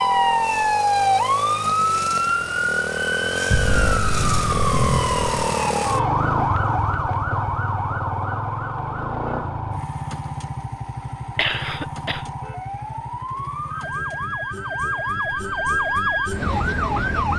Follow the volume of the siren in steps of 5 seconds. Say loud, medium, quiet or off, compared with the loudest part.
loud, medium, medium, loud.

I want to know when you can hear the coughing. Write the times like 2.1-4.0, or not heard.
11.3-12.3.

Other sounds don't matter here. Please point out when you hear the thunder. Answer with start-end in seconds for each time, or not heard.
3.5-5.2.